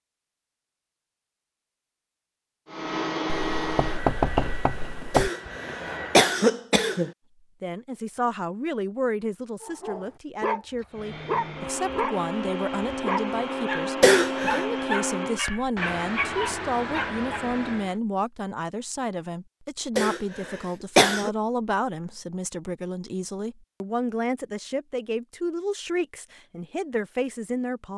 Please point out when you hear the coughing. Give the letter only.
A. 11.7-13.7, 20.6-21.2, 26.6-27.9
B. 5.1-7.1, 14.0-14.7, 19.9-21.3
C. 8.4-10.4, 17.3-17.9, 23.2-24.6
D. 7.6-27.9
B.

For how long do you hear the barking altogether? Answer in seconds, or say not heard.
8 s.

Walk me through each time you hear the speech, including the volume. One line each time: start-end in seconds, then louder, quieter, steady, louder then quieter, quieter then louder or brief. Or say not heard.
7.6-27.9 steady.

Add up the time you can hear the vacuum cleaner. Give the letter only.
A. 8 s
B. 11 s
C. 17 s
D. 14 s
B.